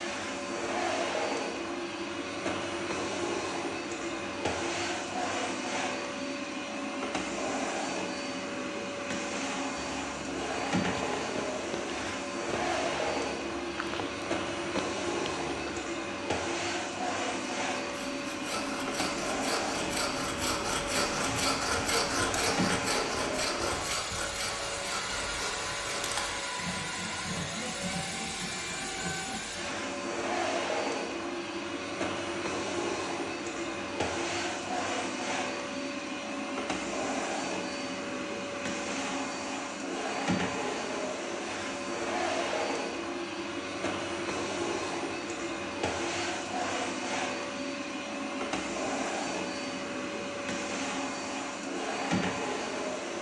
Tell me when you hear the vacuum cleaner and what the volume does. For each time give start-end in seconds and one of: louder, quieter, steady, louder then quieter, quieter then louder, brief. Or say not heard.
0.0-53.1 steady.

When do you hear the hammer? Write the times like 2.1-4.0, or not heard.
not heard.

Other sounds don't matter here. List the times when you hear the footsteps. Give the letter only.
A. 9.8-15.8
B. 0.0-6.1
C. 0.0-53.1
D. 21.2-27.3
A.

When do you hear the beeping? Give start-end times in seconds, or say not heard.
not heard.